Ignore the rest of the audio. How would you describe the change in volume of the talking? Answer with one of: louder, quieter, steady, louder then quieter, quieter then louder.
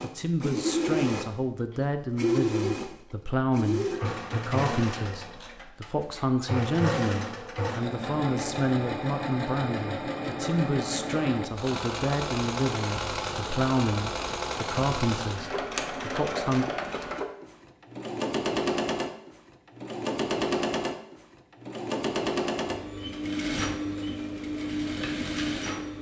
steady.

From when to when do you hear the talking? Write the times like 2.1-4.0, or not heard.
0.0-16.6.